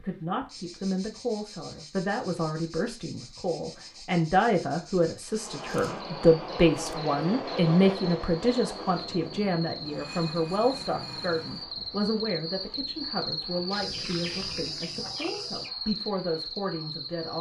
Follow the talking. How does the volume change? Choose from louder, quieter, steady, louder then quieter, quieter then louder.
louder then quieter.